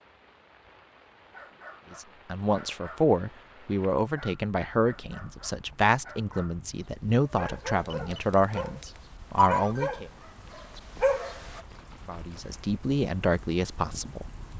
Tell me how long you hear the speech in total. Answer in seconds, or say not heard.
10 s.